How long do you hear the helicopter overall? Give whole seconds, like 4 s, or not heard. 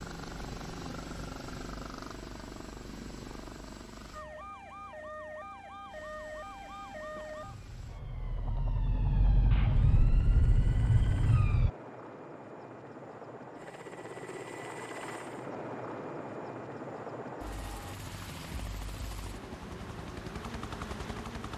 20 s.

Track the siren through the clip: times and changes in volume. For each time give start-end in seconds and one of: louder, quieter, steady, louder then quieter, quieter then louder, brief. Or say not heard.
4.1-11.7 louder.